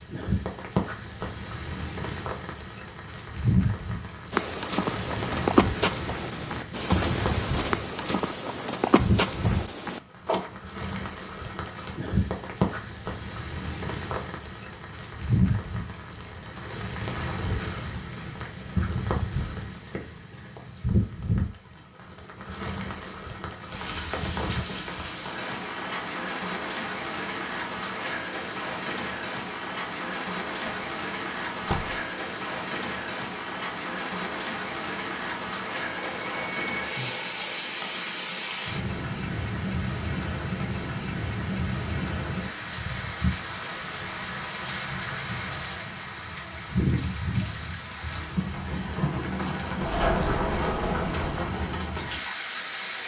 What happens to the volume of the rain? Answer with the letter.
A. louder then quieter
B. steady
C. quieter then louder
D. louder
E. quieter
B.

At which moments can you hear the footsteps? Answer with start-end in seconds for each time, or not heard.
4.3-10.0.